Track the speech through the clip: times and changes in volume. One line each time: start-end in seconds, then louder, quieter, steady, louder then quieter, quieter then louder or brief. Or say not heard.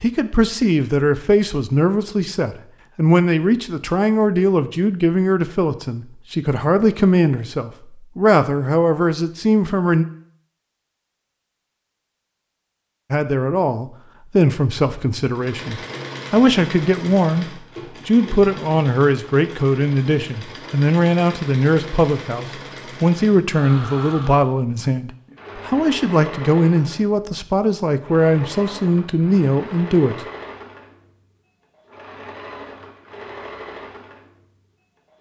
0.0-10.1 steady
13.1-30.2 steady.